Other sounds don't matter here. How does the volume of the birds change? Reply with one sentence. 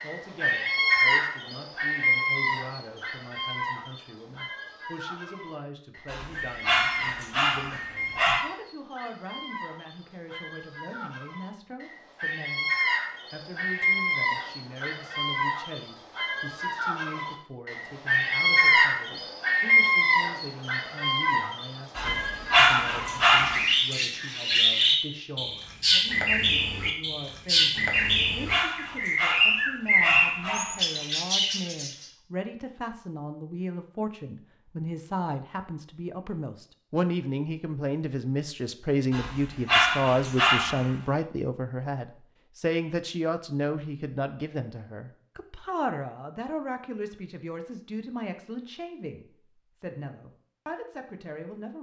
The loudness of the birds goes down, then up.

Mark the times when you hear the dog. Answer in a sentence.
You can hear the dog from 6.0 to 8.4 s, from 21.9 to 23.6 s, from 27.9 to 30.8 s and from 39.1 to 40.9 s.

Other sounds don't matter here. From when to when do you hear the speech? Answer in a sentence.
You can hear the speech from 0.0 to 51.7 s.